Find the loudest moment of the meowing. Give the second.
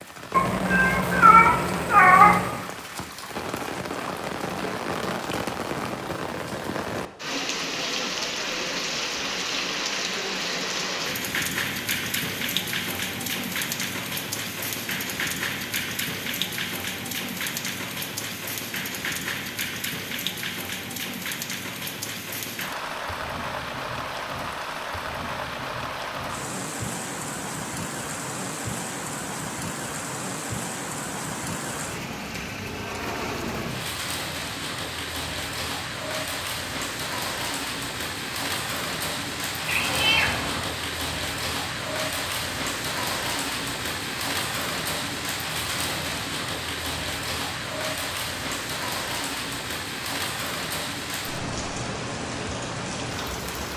2 s.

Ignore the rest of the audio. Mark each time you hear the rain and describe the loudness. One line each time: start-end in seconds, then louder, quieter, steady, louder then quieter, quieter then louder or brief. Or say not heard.
0.0-53.7 steady.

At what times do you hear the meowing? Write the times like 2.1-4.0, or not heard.
0.3-2.6, 39.6-40.7.